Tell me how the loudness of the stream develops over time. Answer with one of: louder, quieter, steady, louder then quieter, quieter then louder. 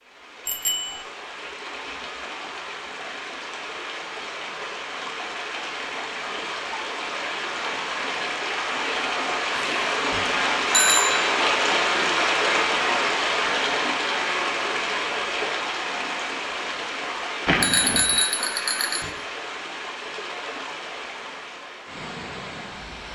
louder then quieter.